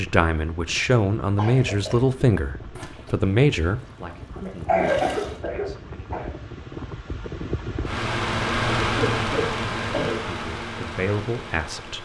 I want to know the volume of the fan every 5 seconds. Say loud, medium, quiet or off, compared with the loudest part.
quiet, loud, medium.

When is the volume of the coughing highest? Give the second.
5 s.